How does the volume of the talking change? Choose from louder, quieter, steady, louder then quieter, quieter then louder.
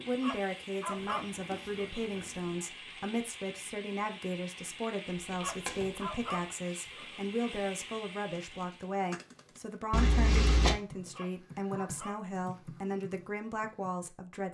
steady.